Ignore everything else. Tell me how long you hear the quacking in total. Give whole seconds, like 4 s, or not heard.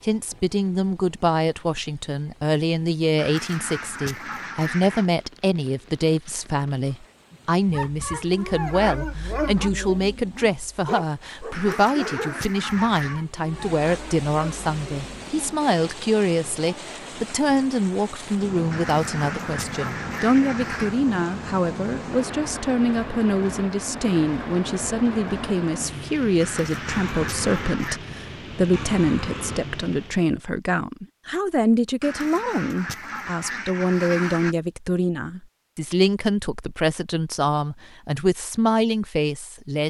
10 s.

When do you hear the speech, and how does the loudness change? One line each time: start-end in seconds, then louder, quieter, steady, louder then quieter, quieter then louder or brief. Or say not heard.
0.0-39.8 steady.